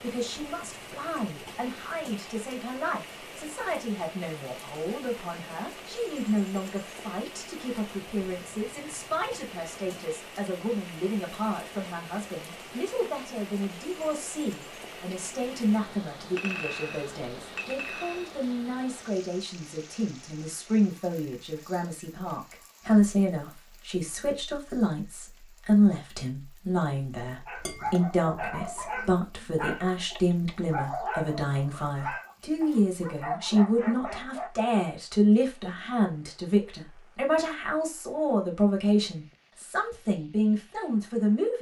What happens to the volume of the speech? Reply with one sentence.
The loudness of the speech goes up.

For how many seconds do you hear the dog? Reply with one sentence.
You can hear the dog for 7 seconds altogether.